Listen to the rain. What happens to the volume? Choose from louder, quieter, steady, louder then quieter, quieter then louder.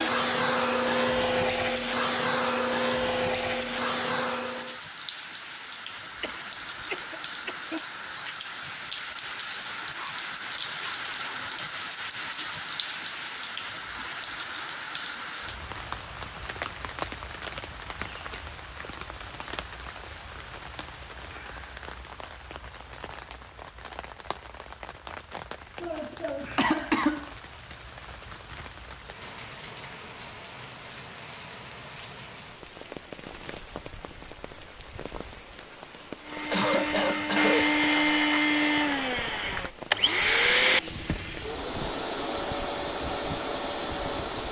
quieter.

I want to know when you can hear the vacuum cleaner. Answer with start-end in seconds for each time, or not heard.
0.0-4.8, 36.2-44.4.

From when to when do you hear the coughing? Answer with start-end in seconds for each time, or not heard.
6.2-7.7, 25.8-27.2, 36.5-37.9.